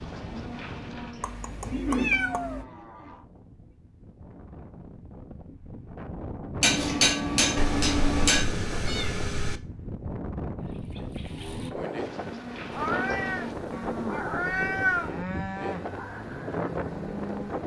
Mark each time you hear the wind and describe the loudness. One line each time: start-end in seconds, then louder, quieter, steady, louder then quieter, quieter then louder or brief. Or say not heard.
0.0-17.6 louder.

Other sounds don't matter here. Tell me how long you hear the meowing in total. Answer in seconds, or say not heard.
6 s.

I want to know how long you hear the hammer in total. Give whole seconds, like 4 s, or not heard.
2 s.